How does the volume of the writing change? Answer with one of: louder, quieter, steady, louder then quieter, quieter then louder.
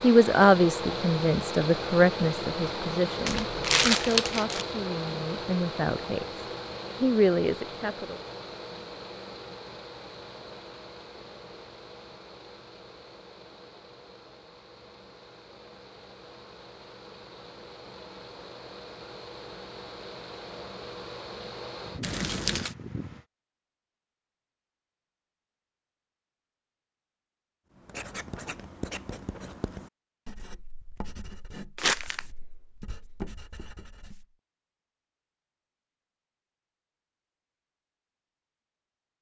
quieter then louder.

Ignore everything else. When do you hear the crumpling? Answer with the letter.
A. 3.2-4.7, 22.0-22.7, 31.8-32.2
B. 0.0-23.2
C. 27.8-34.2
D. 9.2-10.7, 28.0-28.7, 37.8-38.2
A.